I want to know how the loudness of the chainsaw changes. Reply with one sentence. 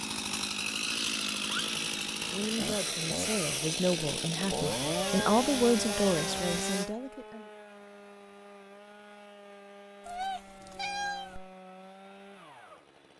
The volume of the chainsaw goes down.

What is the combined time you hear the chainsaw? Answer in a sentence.
You can hear the chainsaw for 13 seconds altogether.